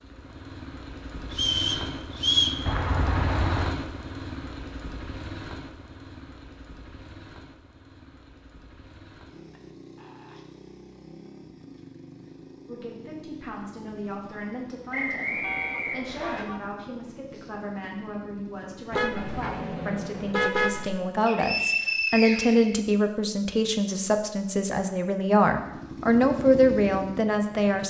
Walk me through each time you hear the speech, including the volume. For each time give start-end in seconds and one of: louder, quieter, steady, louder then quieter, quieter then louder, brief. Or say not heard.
12.7-27.8 louder.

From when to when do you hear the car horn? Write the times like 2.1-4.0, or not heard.
2.6-3.8, 15.4-16.7, 18.9-20.9.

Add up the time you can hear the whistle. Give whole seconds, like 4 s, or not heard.
4 s.